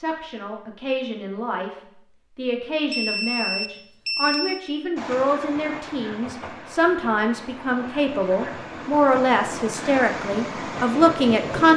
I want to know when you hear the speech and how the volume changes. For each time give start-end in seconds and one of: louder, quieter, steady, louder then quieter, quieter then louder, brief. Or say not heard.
0.0-11.7 louder.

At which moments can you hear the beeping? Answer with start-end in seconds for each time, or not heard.
2.9-4.6.